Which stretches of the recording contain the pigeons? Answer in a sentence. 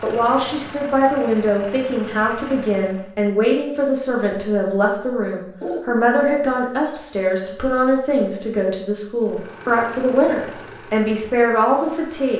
The pigeons can be heard from 5.6 to 7.0 s.